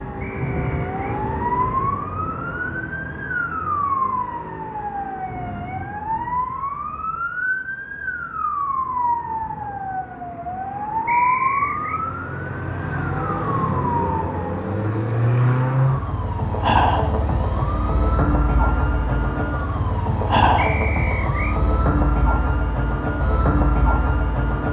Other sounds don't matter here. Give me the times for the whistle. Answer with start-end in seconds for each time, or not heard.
0.2-1.2, 11.1-12.0, 20.6-21.6.